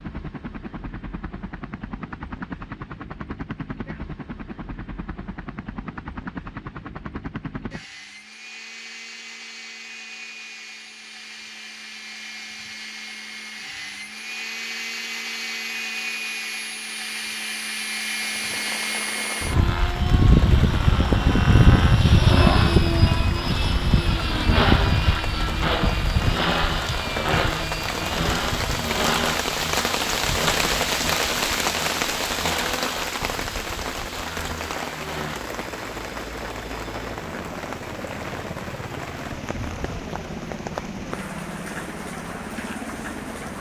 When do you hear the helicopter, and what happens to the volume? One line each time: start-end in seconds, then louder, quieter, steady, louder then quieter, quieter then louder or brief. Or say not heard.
0.0-43.5 louder then quieter.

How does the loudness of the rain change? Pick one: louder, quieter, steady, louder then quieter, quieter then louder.
louder then quieter.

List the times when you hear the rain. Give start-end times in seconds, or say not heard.
18.1-43.5.